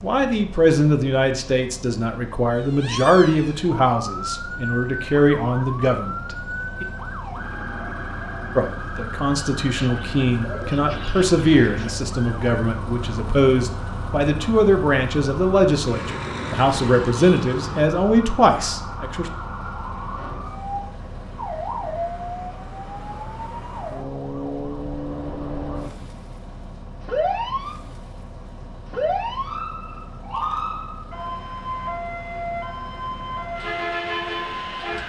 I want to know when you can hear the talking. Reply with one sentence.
The talking can be heard from 0.0 to 6.8 s and from 8.6 to 19.3 s.